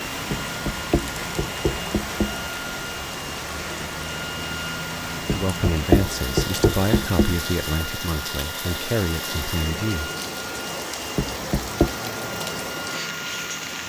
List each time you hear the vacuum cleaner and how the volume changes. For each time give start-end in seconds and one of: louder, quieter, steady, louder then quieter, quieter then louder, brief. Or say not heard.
0.0-13.8 steady.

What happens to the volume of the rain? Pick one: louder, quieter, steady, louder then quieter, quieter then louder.
steady.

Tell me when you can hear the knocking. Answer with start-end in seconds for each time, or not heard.
0.3-2.5, 5.2-7.5, 11.2-11.9.